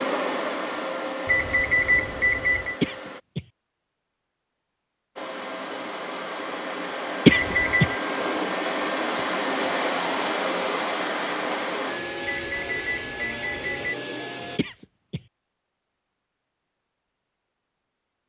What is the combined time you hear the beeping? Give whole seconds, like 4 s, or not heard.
4 s.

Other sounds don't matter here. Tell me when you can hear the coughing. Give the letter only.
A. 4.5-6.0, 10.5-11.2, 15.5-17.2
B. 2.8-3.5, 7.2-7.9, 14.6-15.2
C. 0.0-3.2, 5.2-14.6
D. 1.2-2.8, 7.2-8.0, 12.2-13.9
B.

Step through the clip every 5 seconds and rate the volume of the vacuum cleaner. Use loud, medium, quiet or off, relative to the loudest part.
loud, loud, loud, off.